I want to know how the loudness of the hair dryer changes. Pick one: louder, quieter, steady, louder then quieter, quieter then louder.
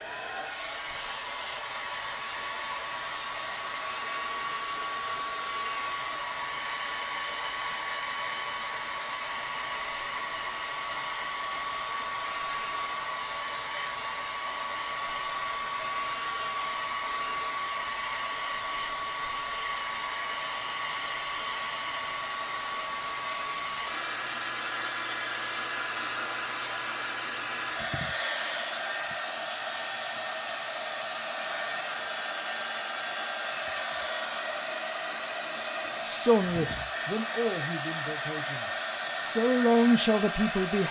steady.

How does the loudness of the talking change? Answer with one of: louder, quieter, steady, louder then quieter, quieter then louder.
quieter then louder.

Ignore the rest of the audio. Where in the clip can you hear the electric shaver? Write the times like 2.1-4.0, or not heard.
not heard.